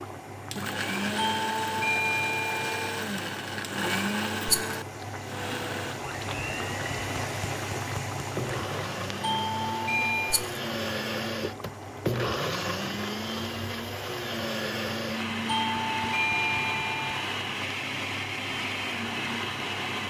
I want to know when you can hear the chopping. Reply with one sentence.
The chopping can't be heard in this clip.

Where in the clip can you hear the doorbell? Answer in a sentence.
You can hear the doorbell from 1.1 to 3.0 s, from 9.2 to 10.4 s and from 15.4 to 17.2 s.